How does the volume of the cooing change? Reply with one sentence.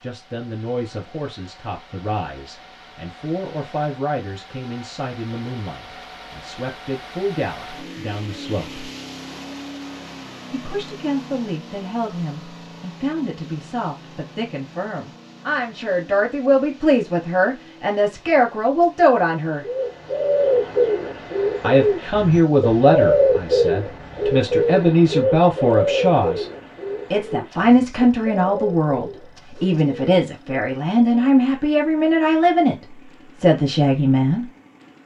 The loudness of the cooing goes down.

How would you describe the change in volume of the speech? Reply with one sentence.
The volume of the speech goes up.